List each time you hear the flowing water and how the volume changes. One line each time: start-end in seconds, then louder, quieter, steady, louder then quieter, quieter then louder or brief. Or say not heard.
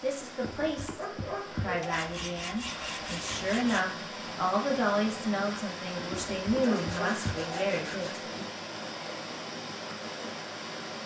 0.0-11.0 louder.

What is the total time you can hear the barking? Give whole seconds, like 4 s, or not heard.
3 s.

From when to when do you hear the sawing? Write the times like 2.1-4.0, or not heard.
1.8-3.9, 6.8-8.2.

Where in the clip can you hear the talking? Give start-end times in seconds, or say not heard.
0.0-8.4.